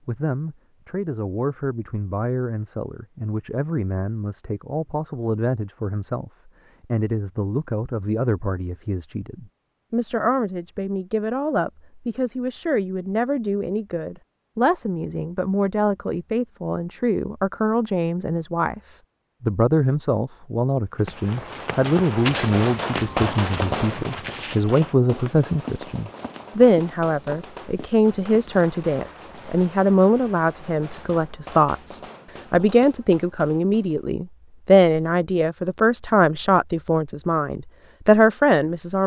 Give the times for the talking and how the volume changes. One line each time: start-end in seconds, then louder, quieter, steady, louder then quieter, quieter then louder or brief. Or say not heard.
0.1-39.0 louder.